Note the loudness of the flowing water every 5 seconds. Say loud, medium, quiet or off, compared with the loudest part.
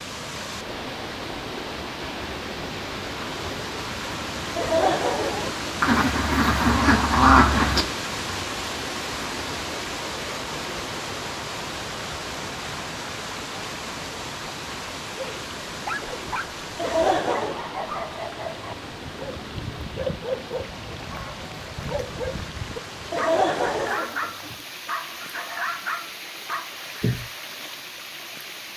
loud, loud, loud, medium, medium, medium.